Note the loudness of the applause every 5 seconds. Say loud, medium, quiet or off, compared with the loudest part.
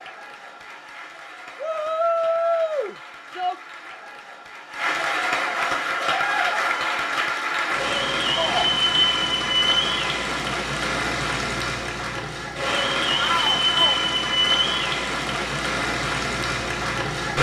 quiet, loud, loud, loud.